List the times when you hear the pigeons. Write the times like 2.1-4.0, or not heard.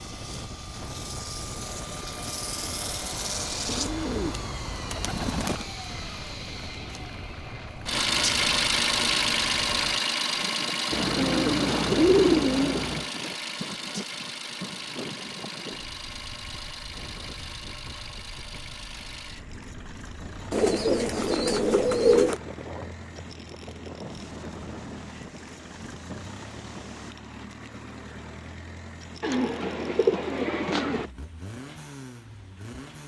3.6-5.7, 10.9-13.1, 20.5-22.4, 29.2-31.1.